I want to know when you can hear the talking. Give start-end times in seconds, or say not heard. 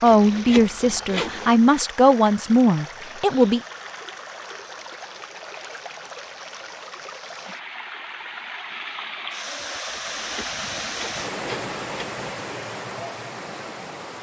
0.0-3.6.